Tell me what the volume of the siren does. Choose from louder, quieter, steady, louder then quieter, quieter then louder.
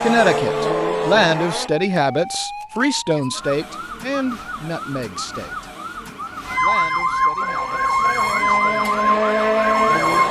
louder.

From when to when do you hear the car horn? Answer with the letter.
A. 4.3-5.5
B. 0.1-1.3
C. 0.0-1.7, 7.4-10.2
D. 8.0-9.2
B.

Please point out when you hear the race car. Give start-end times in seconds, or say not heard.
0.0-1.7, 7.4-10.2.